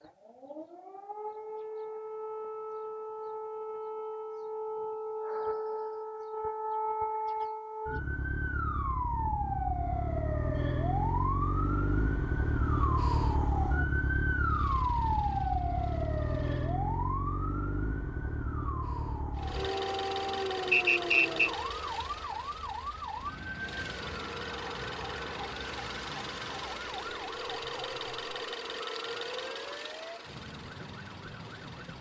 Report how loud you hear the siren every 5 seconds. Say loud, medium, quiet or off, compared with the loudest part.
medium, loud, loud, loud, medium, quiet, quiet.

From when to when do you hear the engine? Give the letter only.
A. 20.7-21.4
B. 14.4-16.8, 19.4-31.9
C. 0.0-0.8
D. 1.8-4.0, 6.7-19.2
B.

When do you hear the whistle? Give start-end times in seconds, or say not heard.
20.7-21.4.